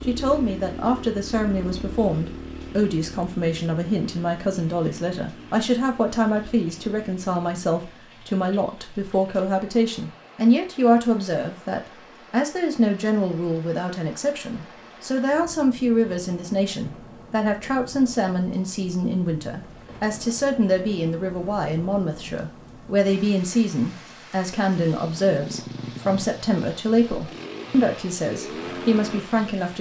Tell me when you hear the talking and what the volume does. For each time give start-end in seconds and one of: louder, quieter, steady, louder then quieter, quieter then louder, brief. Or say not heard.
0.0-29.7 steady.